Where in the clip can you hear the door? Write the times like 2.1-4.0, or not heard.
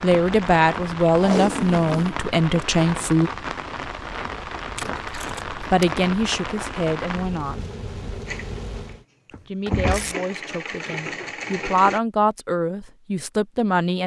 9.3-10.2.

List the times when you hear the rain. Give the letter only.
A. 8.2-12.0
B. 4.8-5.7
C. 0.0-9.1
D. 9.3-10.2
C.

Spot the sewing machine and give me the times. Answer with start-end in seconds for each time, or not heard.
8.2-12.0.